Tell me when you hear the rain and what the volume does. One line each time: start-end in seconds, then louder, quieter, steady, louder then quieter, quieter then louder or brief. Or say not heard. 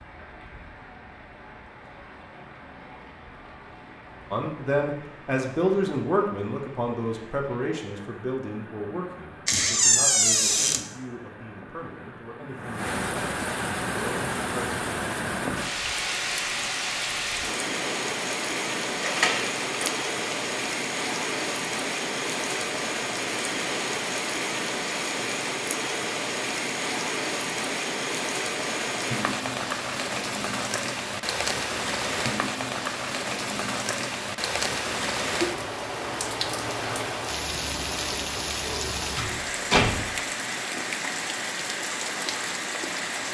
0.0-43.2 louder.